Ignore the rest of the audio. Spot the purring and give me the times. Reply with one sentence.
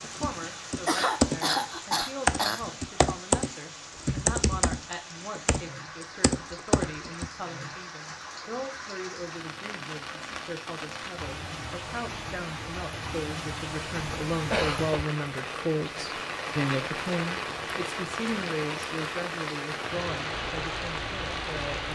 The purring can't be heard in this clip.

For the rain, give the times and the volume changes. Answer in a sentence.
The rain can be heard from 0.0 to 21.9 s, getting louder.